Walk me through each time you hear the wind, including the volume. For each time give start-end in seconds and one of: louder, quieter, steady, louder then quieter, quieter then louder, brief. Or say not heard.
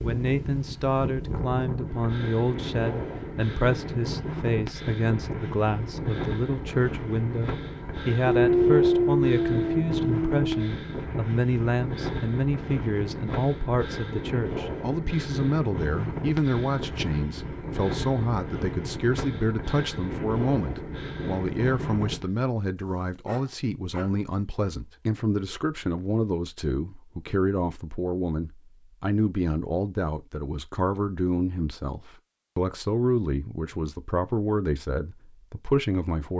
0.0-22.2 steady.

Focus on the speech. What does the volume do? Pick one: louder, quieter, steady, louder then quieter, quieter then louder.
steady.